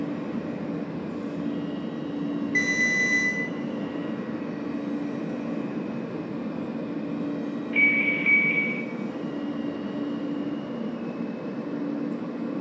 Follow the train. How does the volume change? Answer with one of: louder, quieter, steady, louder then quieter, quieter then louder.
steady.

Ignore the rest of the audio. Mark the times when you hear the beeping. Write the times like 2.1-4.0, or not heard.
2.5-3.3, 7.7-8.8.